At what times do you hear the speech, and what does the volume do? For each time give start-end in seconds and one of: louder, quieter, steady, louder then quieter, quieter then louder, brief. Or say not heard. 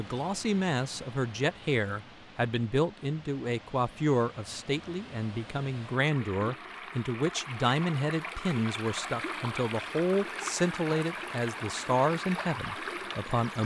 0.0-13.6 steady.